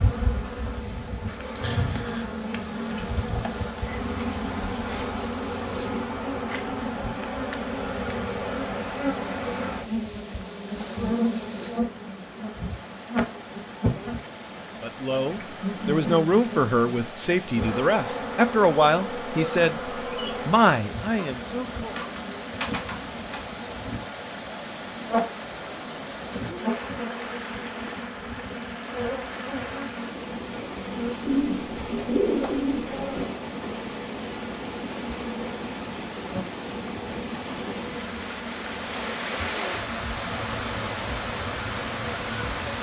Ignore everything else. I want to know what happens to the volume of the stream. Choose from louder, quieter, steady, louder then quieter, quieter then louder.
louder.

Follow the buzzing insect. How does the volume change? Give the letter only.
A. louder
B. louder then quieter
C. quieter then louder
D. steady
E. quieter
E.